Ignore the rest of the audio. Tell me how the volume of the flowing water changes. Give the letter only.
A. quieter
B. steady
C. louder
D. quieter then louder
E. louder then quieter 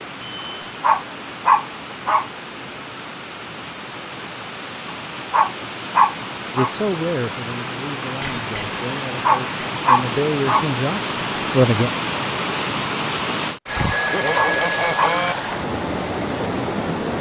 C.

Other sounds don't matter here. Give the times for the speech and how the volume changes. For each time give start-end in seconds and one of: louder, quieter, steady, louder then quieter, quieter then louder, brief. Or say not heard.
6.5-11.9 quieter then louder.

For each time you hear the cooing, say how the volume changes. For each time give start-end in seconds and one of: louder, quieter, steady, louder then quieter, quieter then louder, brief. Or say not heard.
not heard.